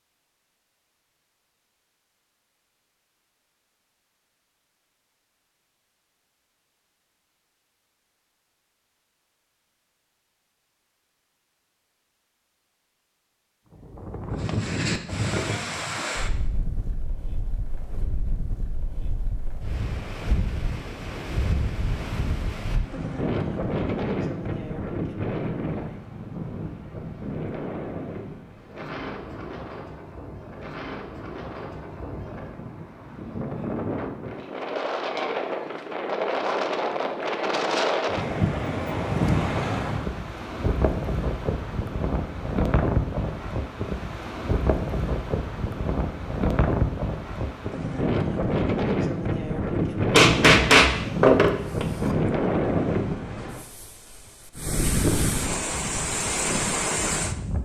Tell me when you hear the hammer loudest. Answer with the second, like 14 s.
51 s.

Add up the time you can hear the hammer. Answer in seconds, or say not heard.
2 s.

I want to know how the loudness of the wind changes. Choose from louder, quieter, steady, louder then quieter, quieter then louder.
louder.